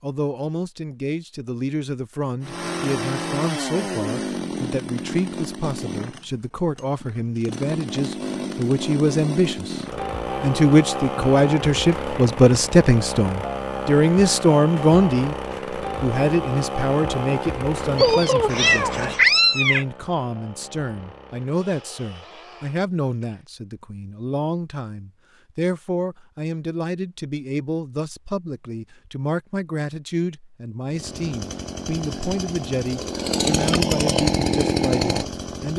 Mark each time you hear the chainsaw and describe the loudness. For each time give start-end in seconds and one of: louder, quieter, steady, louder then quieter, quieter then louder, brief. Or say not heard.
2.4-23.4 quieter
30.9-35.7 louder.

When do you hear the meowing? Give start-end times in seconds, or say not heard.
17.9-19.9.